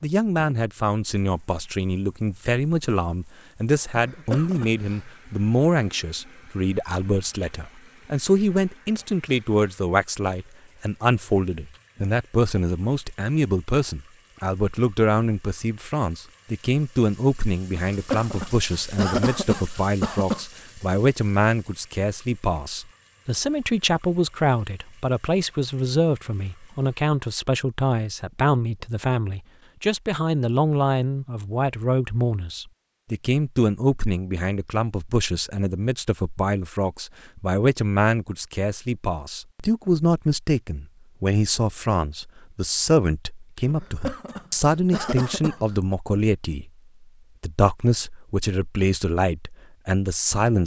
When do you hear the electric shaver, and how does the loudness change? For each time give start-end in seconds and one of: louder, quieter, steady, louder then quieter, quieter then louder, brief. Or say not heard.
not heard.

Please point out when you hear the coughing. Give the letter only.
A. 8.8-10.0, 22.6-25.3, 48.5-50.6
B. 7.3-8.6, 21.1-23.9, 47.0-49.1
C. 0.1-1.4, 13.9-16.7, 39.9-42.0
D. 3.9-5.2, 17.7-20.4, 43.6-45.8
D.